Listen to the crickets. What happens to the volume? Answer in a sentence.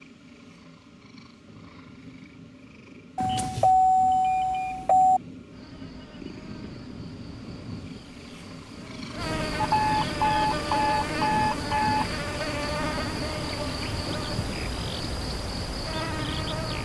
The volume of the crickets goes up.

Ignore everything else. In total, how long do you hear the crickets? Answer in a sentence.
You can hear the crickets for 11 seconds altogether.